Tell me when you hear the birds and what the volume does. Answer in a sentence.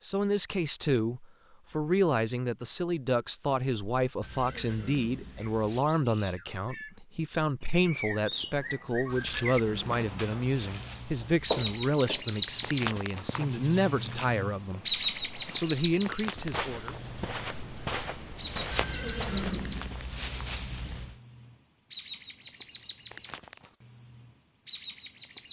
The birds can be heard from 5.3 to 25.4 s, getting louder then quieter.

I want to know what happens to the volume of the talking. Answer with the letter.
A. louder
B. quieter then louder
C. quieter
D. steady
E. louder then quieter
D.